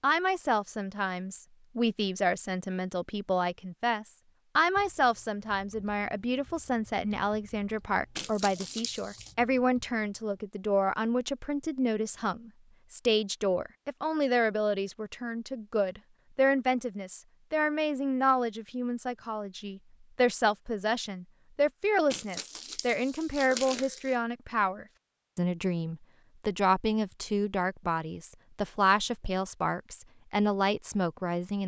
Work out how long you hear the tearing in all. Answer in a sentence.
You can hear the tearing for 3 seconds altogether.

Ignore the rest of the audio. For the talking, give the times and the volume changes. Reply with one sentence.
You can hear the talking from 0.0 to 31.6 s, at a steady volume.